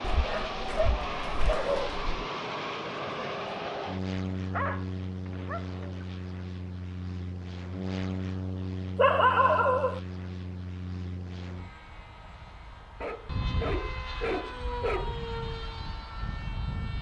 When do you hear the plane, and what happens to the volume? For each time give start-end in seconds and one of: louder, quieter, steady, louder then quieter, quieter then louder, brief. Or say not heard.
0.0-16.9 quieter then louder.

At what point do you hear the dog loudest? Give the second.
9 s.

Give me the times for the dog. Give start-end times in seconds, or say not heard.
0.0-2.0, 4.5-6.0, 8.9-10.0, 13.0-15.2.